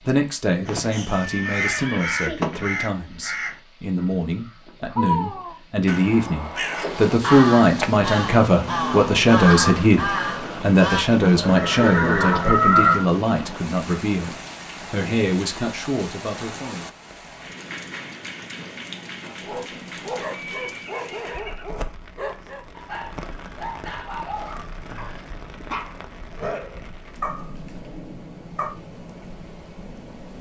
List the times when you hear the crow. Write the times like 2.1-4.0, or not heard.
0.7-11.1.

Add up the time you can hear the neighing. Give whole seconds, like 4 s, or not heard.
4 s.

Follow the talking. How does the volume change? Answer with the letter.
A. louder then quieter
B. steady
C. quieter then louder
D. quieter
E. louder
A.